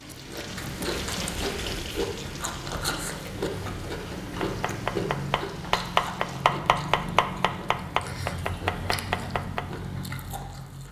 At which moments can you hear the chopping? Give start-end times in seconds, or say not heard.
4.4-9.7.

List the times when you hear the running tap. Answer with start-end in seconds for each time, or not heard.
0.0-6.6.